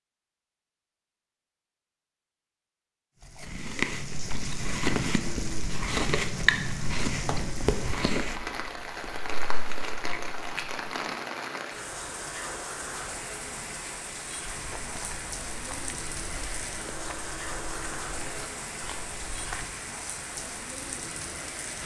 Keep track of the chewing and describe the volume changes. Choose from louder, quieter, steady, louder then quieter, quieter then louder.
quieter.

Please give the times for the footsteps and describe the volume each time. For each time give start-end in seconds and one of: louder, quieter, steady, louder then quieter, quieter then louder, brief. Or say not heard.
14.4-19.6 steady.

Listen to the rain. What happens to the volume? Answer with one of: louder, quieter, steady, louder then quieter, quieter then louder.
steady.